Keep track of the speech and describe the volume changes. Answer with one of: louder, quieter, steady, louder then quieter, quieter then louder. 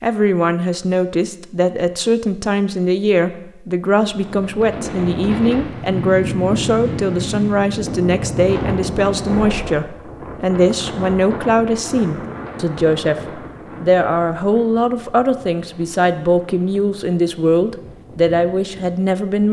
steady.